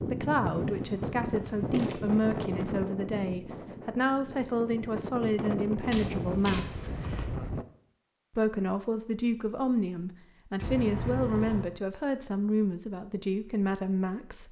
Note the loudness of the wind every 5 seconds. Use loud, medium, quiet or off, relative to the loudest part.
loud, loud, off.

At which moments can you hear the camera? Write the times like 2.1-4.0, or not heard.
0.5-2.3, 5.9-7.2, 10.6-11.7.